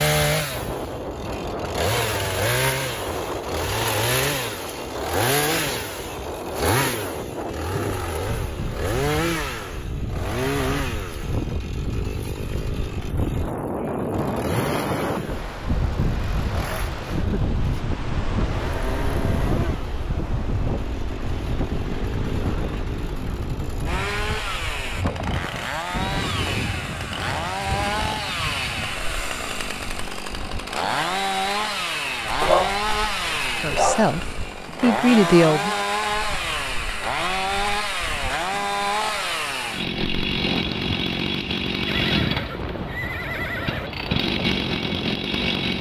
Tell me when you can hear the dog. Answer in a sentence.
The dog can be heard from 32.4 to 34.1 s.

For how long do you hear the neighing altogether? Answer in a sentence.
You can hear the neighing for 2 seconds altogether.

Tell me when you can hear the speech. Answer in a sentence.
You can hear the speech from 33.6 to 35.8 s.